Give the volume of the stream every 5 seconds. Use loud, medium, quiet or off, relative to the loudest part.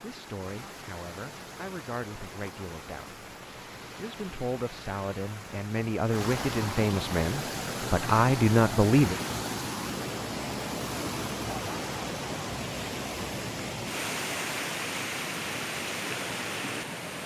medium, loud, loud, loud.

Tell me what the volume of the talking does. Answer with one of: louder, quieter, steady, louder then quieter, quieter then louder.
louder.